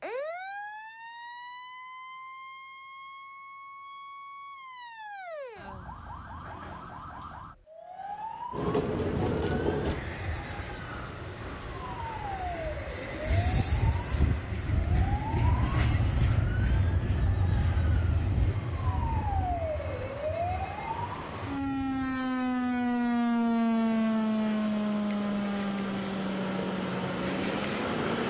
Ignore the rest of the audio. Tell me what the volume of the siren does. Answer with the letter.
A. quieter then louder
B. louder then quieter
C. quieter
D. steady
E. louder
E.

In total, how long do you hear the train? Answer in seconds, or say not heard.
20 s.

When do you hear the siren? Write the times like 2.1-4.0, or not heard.
0.0-28.0.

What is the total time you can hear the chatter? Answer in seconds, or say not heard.
not heard.